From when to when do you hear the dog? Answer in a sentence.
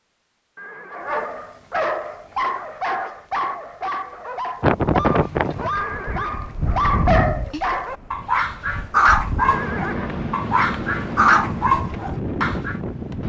The dog can be heard from 0.9 to 12.8 s.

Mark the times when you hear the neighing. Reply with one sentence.
The neighing can be heard from 0.6 to 1.5 s, from 5.7 to 6.3 s and from 9.3 to 10.3 s.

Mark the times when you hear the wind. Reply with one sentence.
The wind can be heard from 4.6 to 13.2 s.